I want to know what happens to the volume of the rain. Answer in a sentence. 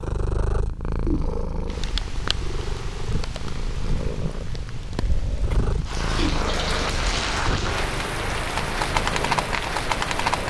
The volume of the rain goes up.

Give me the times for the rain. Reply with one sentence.
You can hear the rain from 1.6 to 10.4 s.